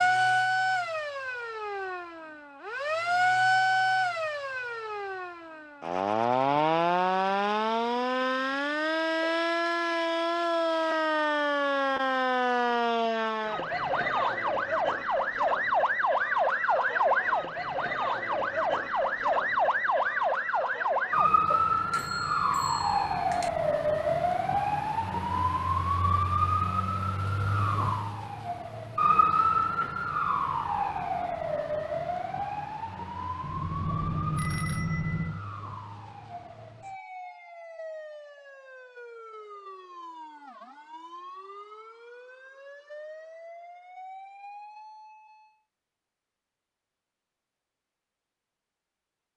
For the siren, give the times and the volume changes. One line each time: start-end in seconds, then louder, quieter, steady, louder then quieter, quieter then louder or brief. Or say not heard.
0.0-45.5 quieter.